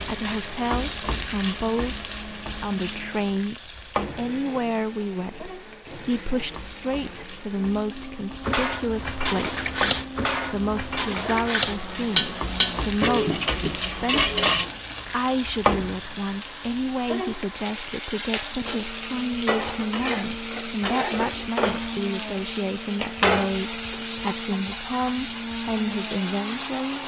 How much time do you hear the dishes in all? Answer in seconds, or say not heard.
6 s.